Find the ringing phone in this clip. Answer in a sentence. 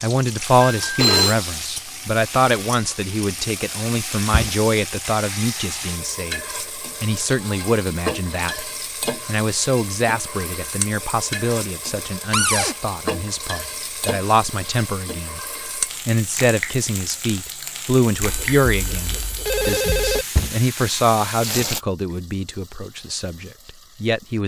You can hear the ringing phone from 0.8 to 1.4 s and from 18.2 to 20.2 s.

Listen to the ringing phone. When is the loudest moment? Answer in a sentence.
The volume of the ringing phone peaks at 1 second.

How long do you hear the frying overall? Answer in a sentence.
The frying can be heard for 24 seconds in total.